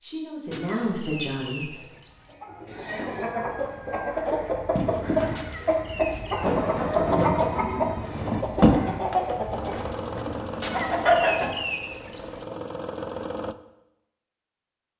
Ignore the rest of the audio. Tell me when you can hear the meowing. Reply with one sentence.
You can hear the meowing from 0.5 to 2.4 s, from 5.3 to 6.5 s and from 10.6 to 12.4 s.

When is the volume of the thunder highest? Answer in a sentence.
The volume of the thunder peaks at 7 seconds.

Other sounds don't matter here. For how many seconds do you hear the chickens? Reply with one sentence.
The chickens can be heard for 9 seconds in total.